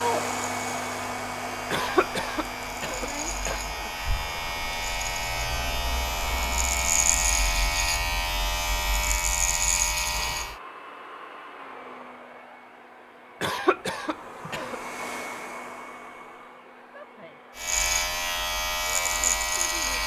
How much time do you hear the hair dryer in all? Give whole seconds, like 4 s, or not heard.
17 s.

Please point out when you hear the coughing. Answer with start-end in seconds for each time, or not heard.
1.7-3.9, 13.4-14.8.